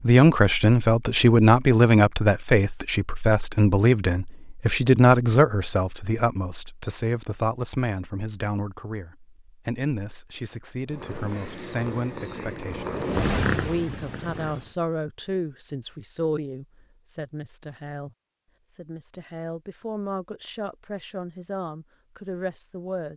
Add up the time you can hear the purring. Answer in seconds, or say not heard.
4 s.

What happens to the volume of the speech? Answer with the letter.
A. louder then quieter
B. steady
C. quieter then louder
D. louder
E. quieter
E.